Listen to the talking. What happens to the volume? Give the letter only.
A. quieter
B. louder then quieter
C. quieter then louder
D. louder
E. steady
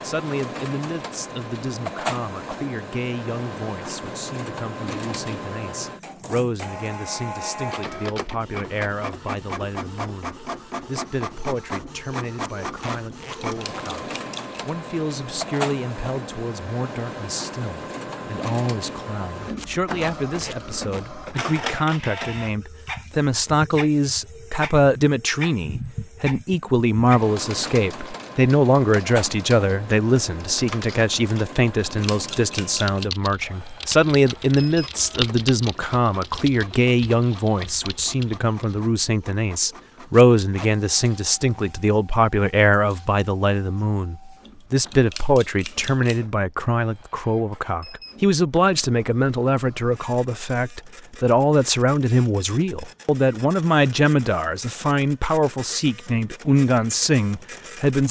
D.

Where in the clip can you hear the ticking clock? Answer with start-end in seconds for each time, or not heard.
not heard.